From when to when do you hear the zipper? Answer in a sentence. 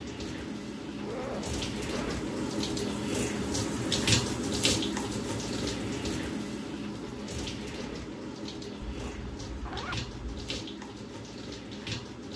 The zipper can be heard from 0.9 to 2.2 s and from 8.8 to 10.4 s.